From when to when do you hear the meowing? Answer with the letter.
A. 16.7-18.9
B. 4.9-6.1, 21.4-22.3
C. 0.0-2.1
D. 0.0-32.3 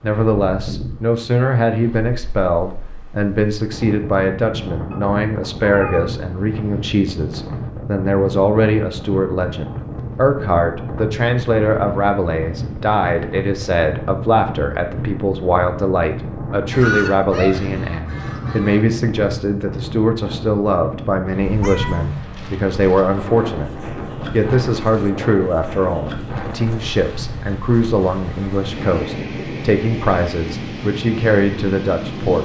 B.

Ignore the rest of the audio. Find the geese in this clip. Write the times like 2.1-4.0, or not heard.
16.7-18.9.